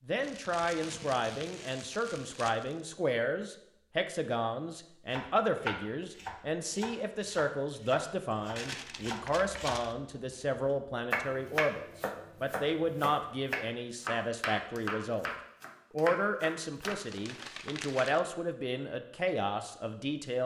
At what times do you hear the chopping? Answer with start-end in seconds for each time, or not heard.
5.1-17.0.